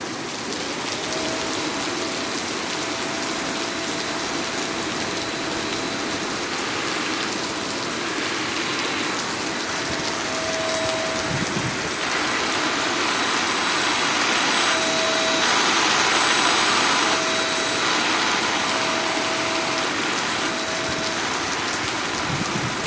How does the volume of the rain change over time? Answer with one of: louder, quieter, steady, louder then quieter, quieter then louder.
steady.